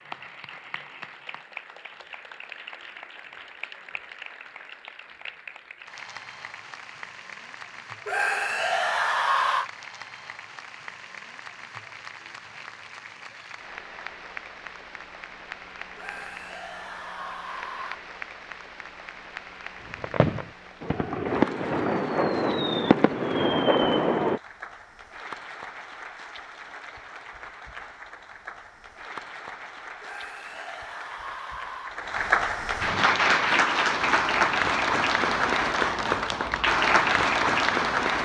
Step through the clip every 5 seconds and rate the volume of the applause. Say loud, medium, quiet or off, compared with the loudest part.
quiet, quiet, quiet, quiet, quiet, quiet, loud, loud.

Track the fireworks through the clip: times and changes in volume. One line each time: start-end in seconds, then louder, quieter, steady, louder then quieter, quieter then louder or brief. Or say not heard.
19.9-24.4 louder.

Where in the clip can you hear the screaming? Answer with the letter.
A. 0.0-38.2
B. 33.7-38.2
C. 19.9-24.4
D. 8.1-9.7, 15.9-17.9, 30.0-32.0
D.